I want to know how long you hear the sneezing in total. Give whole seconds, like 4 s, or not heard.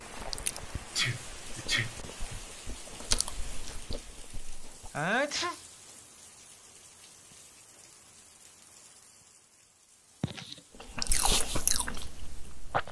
3 s.